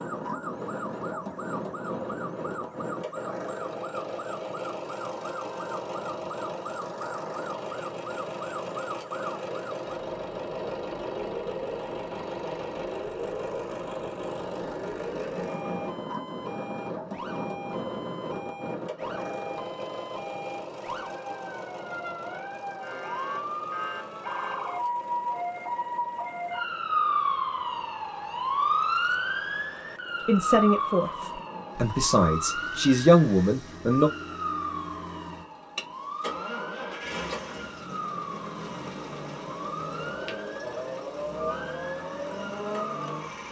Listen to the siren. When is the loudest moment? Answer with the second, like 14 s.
29 s.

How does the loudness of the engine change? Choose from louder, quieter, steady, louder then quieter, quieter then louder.
quieter then louder.